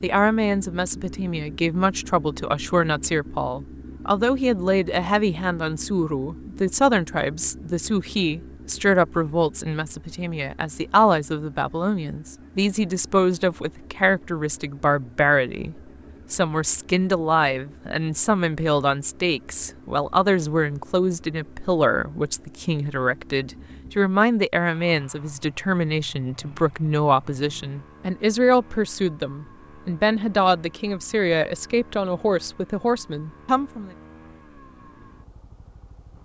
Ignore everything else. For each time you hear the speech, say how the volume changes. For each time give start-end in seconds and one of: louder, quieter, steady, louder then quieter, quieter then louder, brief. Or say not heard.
0.0-33.9 steady.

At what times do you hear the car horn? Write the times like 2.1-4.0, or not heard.
not heard.